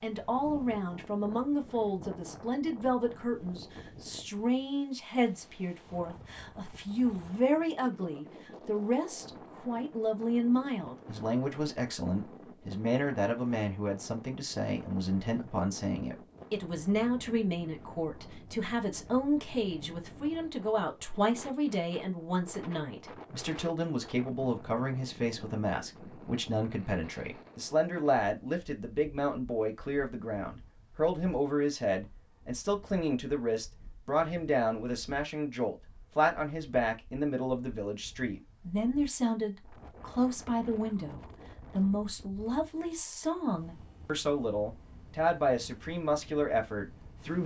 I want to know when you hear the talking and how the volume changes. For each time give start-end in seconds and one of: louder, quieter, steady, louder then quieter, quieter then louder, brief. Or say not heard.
0.0-47.4 steady.